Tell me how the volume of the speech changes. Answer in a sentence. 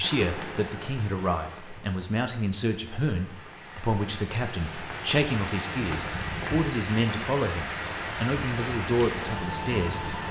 The volume of the speech stays about the same.